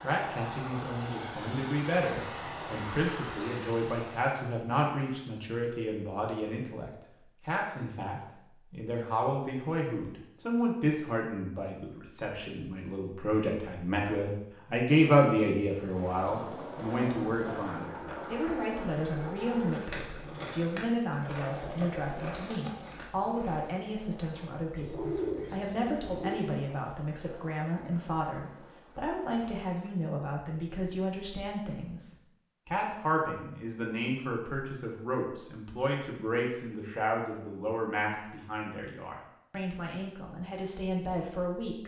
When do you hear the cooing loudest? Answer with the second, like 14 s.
25 s.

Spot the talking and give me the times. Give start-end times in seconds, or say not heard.
0.0-41.8.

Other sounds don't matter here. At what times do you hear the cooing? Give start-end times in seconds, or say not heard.
24.8-26.4.